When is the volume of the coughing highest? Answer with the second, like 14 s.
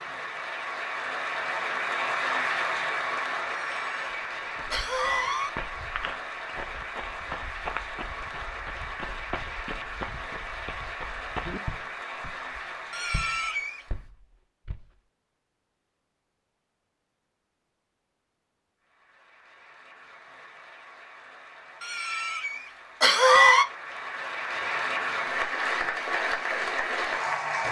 23 s.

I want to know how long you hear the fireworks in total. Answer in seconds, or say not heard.
not heard.